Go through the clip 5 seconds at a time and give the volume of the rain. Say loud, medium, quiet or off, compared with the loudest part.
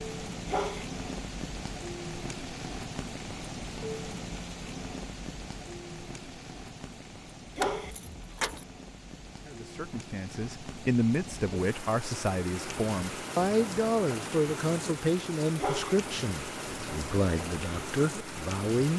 loud, medium, loud, loud.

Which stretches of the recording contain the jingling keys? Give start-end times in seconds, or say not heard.
7.6-8.7.